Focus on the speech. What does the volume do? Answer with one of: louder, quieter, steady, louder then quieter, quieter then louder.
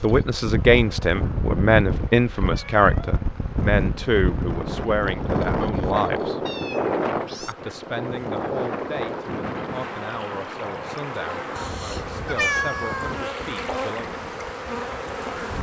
quieter.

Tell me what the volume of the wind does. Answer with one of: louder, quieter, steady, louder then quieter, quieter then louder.
quieter.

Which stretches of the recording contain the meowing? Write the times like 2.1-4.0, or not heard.
2.5-3.2, 6.5-7.5, 11.6-13.2.